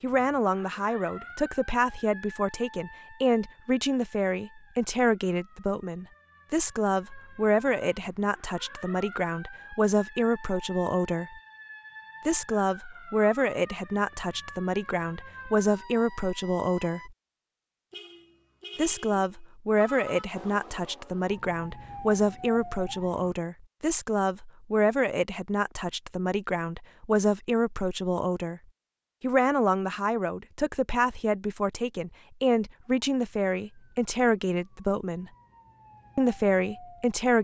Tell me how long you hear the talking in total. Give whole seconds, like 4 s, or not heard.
33 s.